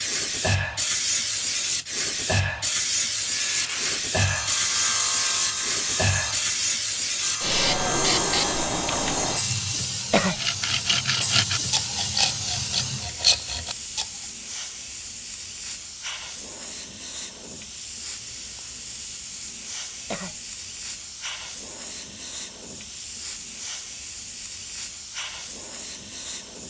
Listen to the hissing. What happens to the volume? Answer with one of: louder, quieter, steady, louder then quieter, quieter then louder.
quieter.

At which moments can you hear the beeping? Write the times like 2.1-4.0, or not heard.
not heard.